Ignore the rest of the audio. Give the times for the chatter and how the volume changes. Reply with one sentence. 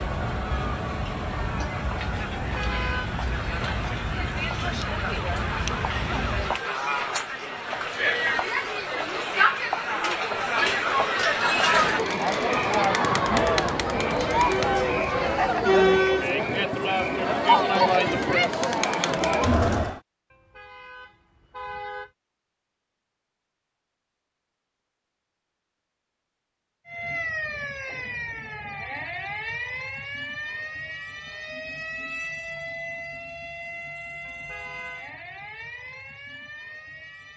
You can hear the chatter from 0.0 to 20.0 s, getting louder.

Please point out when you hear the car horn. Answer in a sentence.
The car horn can be heard from 2.4 to 3.1 s, from 20.3 to 22.1 s and from 34.2 to 35.0 s.